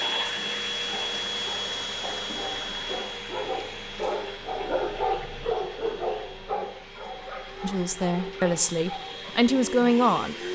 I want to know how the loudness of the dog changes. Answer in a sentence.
The loudness of the dog goes up, then down.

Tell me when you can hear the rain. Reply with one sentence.
The rain can't be heard in this clip.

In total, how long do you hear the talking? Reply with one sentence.
You can hear the talking for 3 seconds altogether.